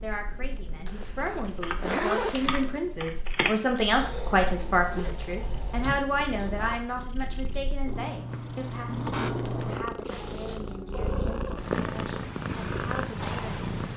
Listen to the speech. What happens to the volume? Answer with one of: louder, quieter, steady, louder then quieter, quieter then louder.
louder then quieter.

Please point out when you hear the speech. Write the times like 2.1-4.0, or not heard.
0.0-13.7.